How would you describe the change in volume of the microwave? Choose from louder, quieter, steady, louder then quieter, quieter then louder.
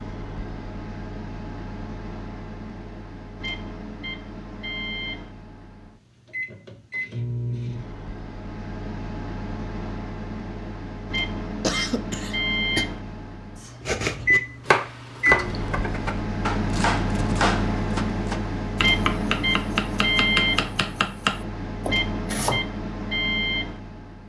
louder.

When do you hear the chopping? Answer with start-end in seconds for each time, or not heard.
13.8-22.6.